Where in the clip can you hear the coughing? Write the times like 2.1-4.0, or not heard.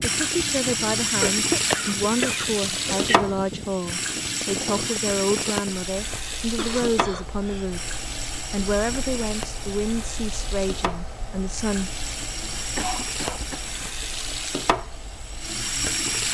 1.2-3.2, 6.1-7.7, 12.8-13.7.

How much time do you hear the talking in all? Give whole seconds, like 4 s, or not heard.
12 s.